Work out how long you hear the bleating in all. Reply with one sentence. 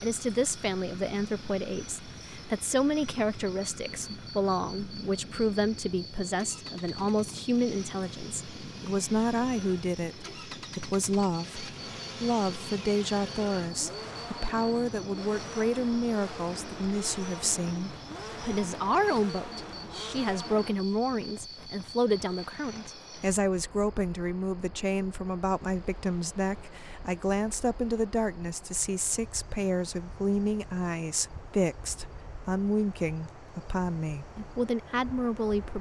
The bleating can't be heard in this clip.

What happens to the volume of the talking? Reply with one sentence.
The volume of the talking stays about the same.